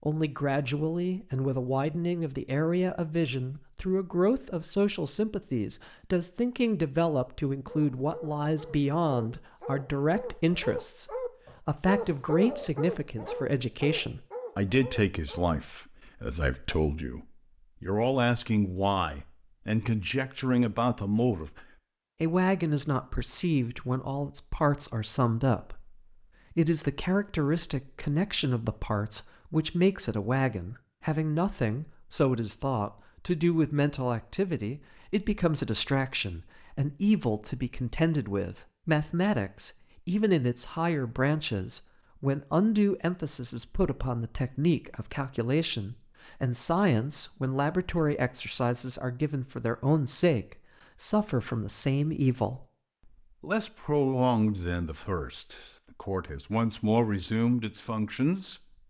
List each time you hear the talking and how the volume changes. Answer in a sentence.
The talking can be heard from 0.0 to 52.6 s, at a steady volume; and from 53.4 to 58.6 s, getting quieter then louder.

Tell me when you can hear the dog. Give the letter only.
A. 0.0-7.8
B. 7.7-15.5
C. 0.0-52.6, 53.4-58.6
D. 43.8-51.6
B.